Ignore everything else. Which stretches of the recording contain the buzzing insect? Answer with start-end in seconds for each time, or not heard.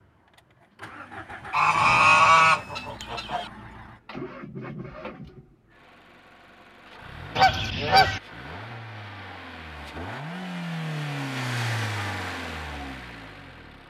not heard.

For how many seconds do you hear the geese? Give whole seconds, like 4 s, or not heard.
3 s.